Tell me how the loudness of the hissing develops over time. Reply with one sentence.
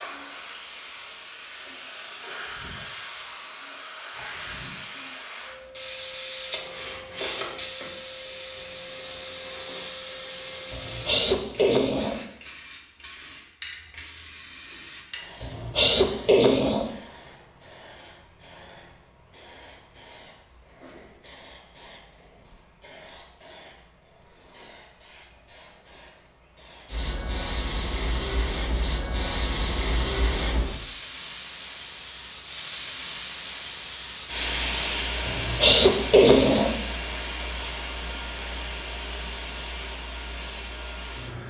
The loudness of the hissing goes down, then up.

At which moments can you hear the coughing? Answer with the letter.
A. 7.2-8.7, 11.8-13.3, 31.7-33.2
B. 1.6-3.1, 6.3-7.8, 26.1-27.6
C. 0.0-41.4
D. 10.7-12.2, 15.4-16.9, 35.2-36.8
D.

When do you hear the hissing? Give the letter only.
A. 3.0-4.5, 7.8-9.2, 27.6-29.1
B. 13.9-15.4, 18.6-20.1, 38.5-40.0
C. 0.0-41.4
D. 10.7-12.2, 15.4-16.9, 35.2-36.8
C.